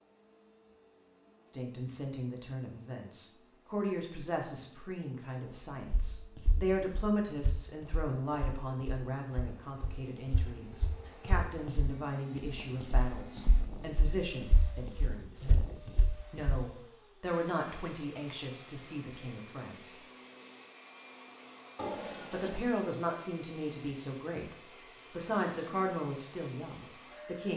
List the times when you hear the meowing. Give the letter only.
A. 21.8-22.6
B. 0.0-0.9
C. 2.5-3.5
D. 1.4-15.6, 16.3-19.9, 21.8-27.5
A.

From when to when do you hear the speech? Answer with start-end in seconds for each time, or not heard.
1.4-15.6, 16.3-19.9, 21.8-27.5.